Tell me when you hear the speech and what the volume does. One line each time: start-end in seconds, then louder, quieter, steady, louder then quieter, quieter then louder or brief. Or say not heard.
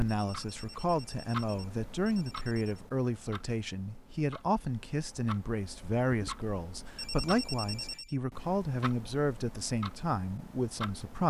0.0-11.2 steady.